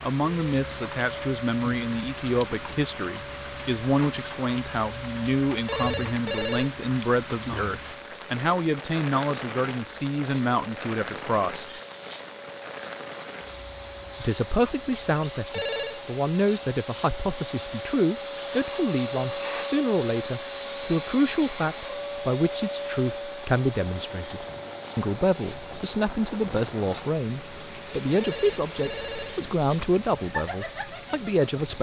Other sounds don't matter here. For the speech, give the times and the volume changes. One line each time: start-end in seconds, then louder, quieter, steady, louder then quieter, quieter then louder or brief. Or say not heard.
0.0-11.7 steady
14.2-31.7 steady.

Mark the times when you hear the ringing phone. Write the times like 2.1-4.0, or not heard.
5.7-6.7, 15.5-16.0, 28.2-30.1.